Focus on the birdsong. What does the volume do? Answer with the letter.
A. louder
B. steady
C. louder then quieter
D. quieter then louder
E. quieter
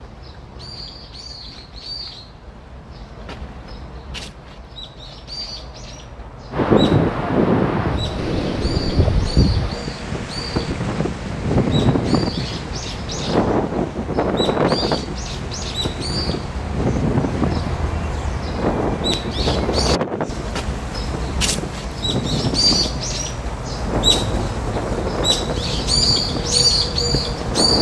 A.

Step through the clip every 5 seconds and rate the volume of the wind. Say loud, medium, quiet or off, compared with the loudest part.
off, loud, loud, medium, medium, medium.